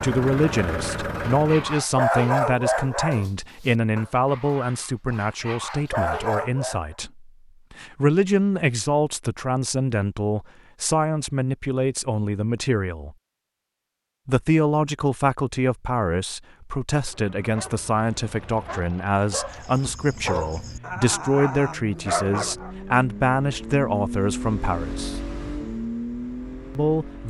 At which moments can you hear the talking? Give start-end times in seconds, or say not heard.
0.0-13.2, 14.2-25.2, 26.8-27.2.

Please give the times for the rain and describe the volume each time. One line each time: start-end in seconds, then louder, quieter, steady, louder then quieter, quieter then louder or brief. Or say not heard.
not heard.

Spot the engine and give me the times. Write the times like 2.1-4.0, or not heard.
0.0-1.9, 16.9-27.2.